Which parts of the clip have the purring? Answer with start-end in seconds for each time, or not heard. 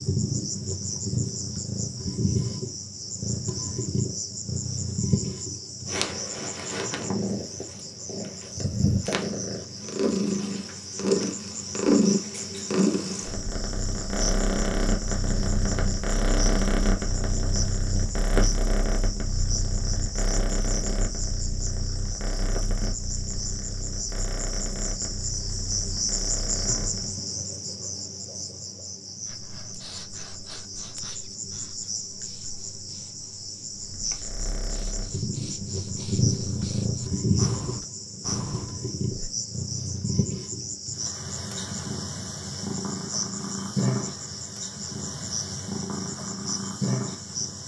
0.0-27.1, 33.7-47.6.